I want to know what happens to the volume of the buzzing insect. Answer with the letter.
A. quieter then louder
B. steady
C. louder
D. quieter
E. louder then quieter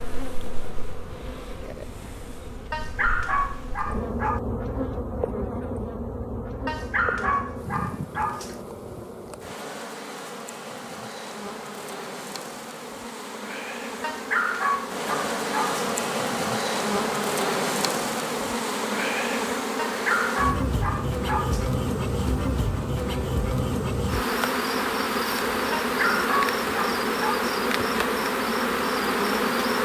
C.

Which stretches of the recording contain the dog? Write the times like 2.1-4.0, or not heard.
2.7-4.4, 6.7-8.6, 14.0-15.8, 19.8-21.7, 25.7-27.5.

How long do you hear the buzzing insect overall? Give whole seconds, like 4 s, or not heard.
30 s.